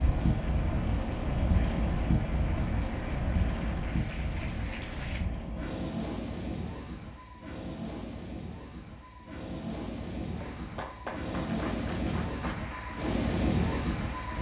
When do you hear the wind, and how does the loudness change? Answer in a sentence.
You can hear the wind from 0.0 to 14.3 s, getting quieter then louder.